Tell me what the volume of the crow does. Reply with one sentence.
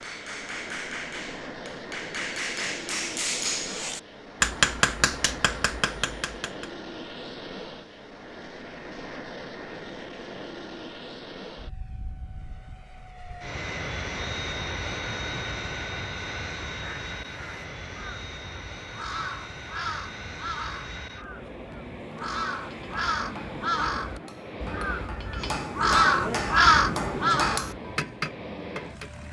The loudness of the crow goes up.